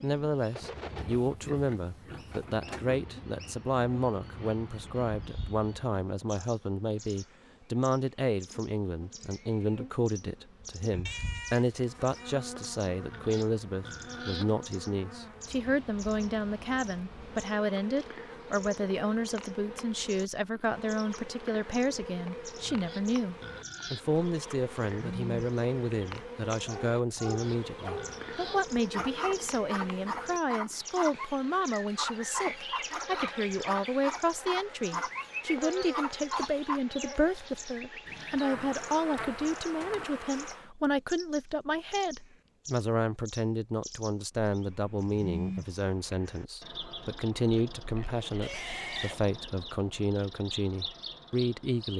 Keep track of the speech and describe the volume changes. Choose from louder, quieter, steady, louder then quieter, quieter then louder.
steady.